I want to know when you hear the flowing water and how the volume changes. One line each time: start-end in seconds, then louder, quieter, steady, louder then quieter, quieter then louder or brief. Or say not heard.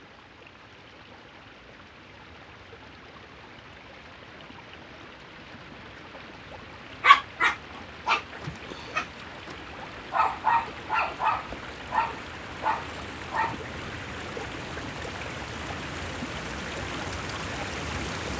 0.0-18.3 louder.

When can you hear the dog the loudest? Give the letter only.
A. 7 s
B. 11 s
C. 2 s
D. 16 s
A.